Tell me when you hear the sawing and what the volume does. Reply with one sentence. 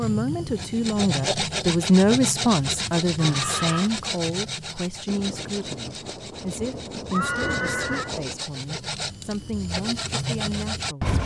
You can hear the sawing from 0.0 to 11.2 s, getting quieter then louder.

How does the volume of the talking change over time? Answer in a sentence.
The volume of the talking goes down.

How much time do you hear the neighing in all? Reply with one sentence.
You can hear the neighing for 2 seconds altogether.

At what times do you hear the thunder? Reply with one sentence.
You can hear the thunder from 5.0 to 8.4 s.